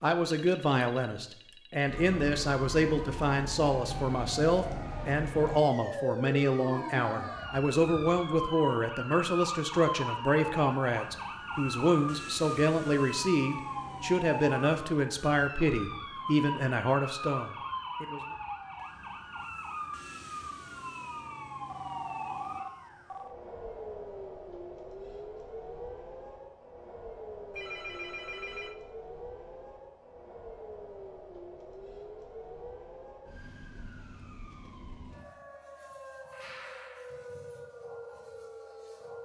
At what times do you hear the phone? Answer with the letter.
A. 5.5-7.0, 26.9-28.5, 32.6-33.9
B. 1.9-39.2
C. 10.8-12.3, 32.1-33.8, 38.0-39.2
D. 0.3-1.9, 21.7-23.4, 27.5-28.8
D.